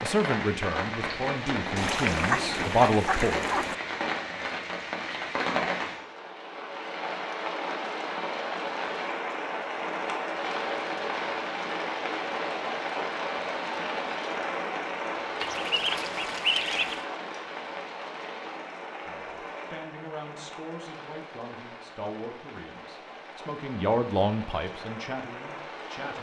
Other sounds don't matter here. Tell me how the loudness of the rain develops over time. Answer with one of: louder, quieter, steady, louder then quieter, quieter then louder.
quieter.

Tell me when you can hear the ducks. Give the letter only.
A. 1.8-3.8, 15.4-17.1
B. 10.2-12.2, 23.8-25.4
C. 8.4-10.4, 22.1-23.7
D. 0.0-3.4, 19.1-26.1
A.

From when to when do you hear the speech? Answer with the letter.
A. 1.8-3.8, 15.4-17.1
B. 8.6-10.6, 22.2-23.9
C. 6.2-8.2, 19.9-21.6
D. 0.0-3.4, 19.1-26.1
D.